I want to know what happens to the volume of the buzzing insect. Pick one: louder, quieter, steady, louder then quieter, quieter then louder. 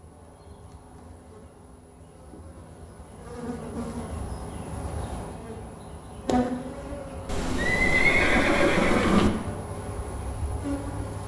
louder.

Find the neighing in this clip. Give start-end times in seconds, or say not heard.
7.2-9.3.